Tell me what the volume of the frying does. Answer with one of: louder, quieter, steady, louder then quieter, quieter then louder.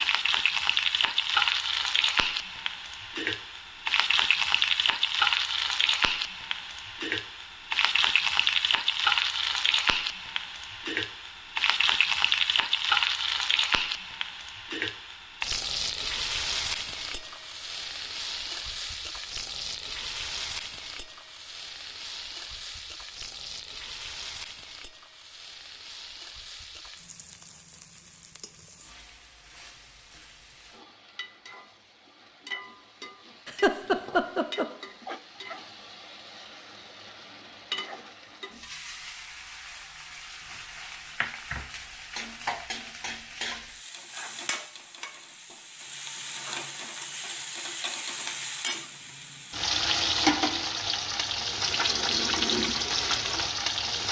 quieter then louder.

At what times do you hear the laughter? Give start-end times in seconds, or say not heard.
33.5-34.6.